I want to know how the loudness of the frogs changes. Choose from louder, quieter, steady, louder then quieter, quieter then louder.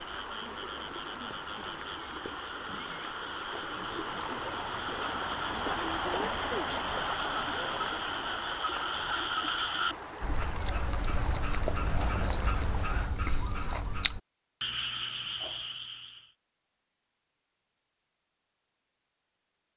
louder.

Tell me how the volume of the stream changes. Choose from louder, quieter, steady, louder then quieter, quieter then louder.
louder then quieter.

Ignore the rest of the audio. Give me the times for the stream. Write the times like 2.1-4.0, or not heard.
0.0-13.2.